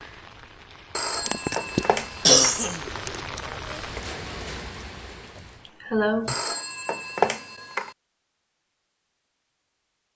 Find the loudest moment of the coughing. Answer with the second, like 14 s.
2 s.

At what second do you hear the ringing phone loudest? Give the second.
7 s.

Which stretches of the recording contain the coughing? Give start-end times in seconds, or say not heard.
1.2-3.2, 5.3-6.4.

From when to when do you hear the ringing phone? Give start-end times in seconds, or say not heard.
0.9-2.5, 6.2-8.0.